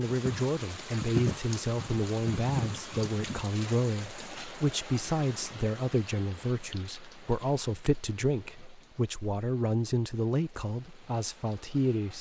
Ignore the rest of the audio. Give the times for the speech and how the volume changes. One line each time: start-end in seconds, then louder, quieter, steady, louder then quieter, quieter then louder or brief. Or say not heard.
0.0-12.1 steady.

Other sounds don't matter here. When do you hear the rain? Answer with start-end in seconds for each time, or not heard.
0.0-12.1.